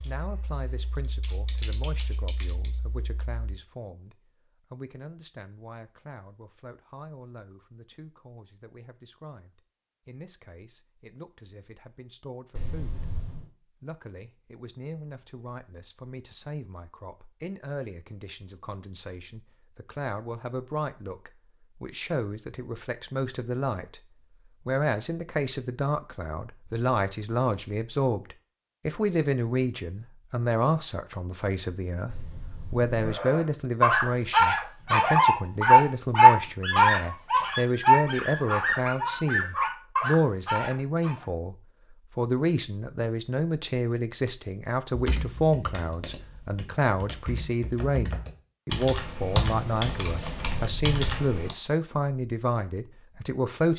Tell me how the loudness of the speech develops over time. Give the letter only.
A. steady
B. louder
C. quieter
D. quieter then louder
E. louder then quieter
B.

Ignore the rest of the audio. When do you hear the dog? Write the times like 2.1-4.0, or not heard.
33.0-41.2.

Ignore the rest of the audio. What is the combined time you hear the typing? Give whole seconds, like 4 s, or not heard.
10 s.